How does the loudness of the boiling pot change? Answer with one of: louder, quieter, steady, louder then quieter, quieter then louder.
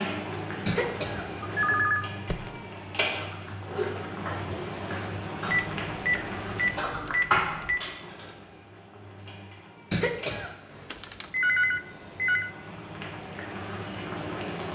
quieter then louder.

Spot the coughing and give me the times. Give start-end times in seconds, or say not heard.
0.7-1.8, 9.9-10.9.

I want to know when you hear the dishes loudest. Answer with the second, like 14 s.
7 s.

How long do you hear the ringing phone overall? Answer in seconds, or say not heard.
5 s.